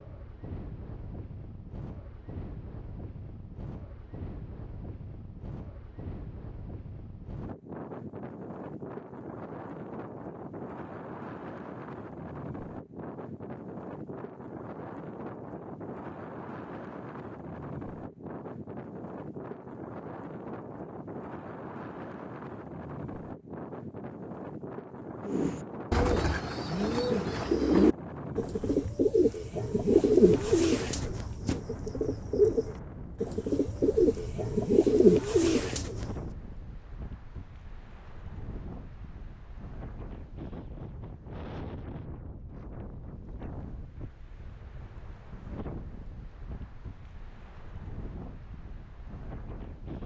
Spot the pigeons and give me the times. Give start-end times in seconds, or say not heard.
25.2-36.1.